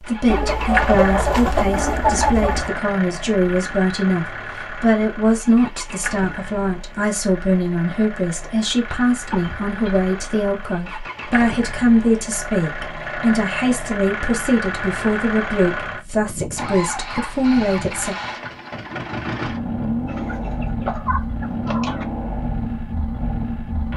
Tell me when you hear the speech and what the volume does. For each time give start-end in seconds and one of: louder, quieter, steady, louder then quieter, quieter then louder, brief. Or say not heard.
0.0-18.1 steady.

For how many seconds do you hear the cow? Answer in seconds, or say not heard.
not heard.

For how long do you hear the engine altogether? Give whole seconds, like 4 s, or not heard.
24 s.